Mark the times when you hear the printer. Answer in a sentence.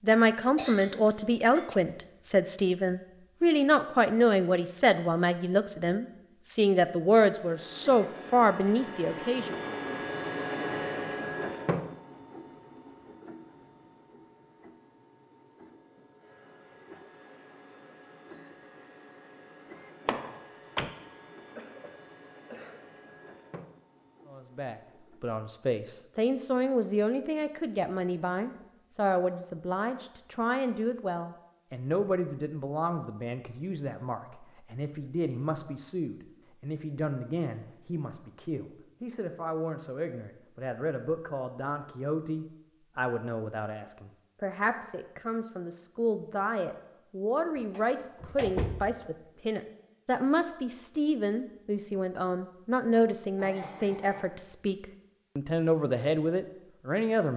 You can hear the printer from 7.4 to 25.3 s.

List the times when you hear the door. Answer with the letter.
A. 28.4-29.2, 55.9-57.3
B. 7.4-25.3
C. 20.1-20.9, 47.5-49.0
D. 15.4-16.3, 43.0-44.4
C.